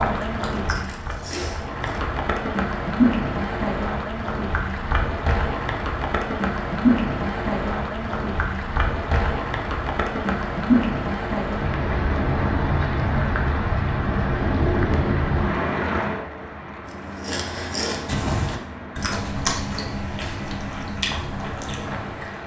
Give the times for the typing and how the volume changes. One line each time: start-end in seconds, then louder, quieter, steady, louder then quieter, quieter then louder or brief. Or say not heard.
not heard.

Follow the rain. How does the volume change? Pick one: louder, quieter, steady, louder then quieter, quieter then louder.
quieter.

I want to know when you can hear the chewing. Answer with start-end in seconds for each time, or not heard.
0.2-2.0, 16.9-22.4.